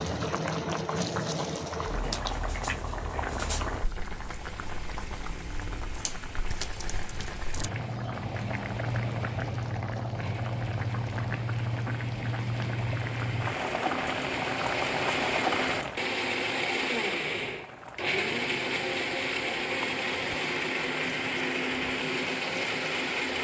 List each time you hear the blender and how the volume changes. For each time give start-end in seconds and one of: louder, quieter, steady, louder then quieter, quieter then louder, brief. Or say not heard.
4.2-23.3 louder.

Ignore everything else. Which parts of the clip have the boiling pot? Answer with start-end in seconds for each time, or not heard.
0.0-23.3.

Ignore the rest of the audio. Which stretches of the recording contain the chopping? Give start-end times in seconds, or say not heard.
not heard.